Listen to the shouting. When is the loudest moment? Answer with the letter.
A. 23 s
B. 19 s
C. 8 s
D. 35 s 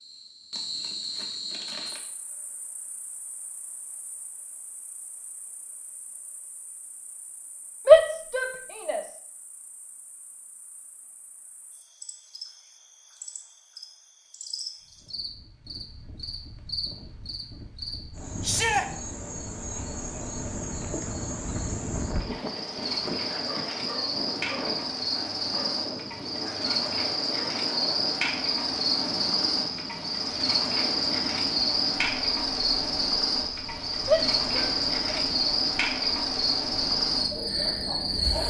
C.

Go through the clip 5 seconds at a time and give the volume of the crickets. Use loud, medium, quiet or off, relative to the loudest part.
quiet, quiet, quiet, quiet, medium, loud, loud, loud.